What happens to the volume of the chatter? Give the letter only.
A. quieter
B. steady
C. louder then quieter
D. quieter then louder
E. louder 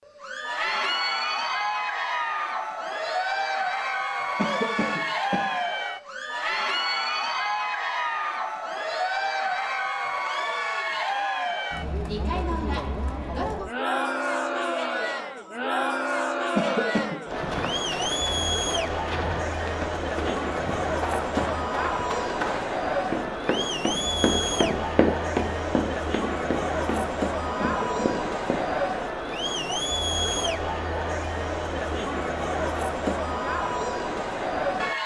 B.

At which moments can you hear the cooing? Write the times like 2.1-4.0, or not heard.
not heard.